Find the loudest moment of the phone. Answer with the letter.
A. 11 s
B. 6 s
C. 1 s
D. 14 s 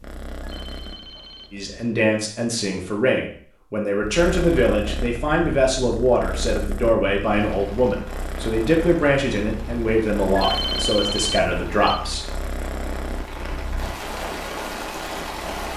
A.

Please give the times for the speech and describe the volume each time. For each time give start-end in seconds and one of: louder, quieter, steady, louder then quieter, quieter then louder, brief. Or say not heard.
1.5-12.3 steady.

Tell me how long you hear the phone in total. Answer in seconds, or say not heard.
3 s.